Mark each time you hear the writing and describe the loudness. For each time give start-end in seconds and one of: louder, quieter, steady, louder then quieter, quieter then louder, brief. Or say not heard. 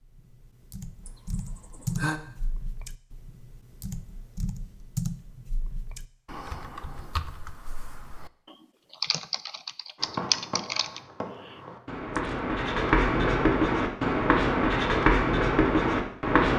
9.9-16.5 louder.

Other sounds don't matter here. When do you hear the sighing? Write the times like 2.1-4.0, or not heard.
1.1-2.2.